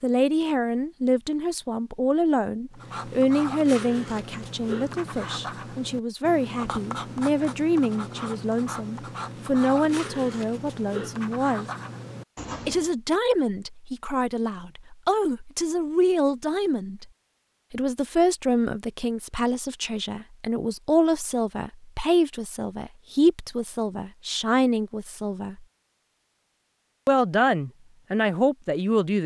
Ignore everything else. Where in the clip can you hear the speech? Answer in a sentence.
You can hear the speech from 0.0 to 11.7 s, from 12.7 to 17.1 s, from 17.7 to 25.6 s and from 27.1 to 29.2 s.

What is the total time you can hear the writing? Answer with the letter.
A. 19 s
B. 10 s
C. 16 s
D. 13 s
B.